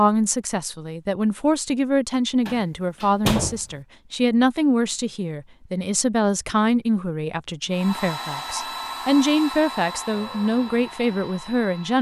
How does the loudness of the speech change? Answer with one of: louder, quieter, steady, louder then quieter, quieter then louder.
steady.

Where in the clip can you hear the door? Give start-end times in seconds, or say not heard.
2.5-3.8.